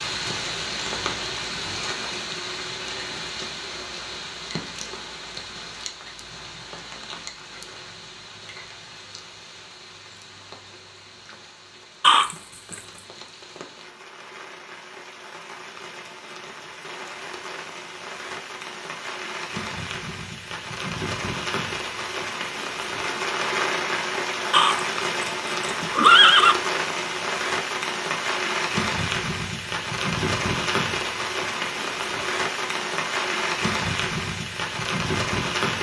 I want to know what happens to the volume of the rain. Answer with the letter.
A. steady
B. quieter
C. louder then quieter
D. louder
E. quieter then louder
E.